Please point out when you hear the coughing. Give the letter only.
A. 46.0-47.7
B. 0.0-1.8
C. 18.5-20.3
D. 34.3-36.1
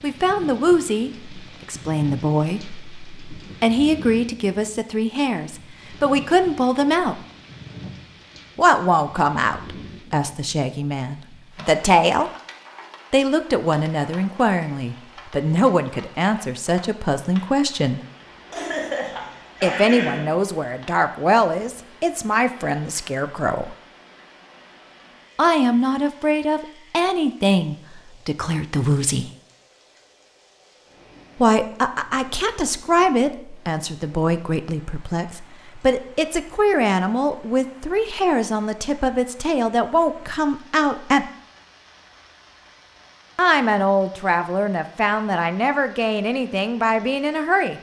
C.